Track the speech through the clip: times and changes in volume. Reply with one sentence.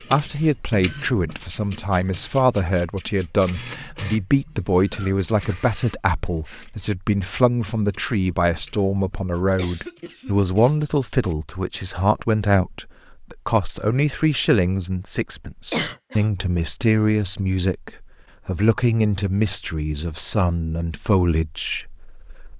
You can hear the speech from 0.1 to 22.5 s, at a steady volume.